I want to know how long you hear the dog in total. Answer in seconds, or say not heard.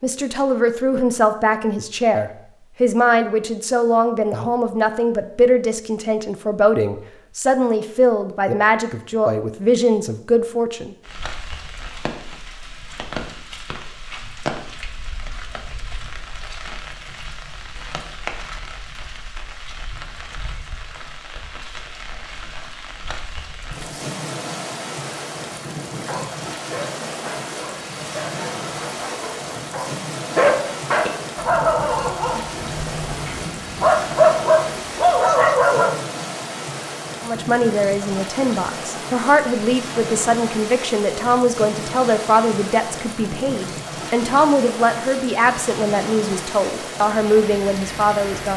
10 s.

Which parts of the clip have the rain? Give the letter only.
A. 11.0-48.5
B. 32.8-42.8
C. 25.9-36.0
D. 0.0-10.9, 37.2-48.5
A.